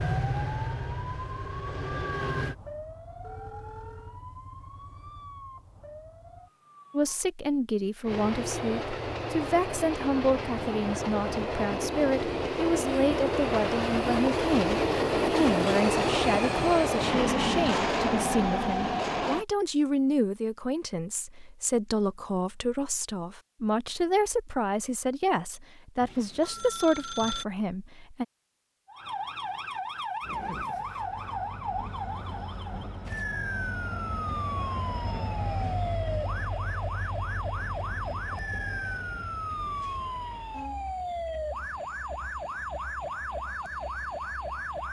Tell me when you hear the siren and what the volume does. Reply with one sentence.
The siren can be heard from 0.1 to 7.2 s, getting quieter; and from 28.9 to 44.8 s, at a steady volume.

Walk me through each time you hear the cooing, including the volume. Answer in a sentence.
The cooing can't be heard in this clip.